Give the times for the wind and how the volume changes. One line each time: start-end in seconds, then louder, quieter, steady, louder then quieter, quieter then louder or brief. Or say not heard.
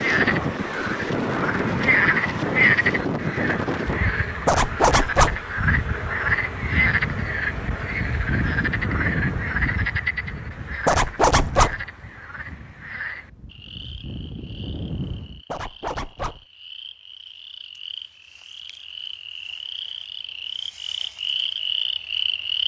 0.0-15.4 quieter.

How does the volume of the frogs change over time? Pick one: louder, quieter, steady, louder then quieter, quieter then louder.
quieter then louder.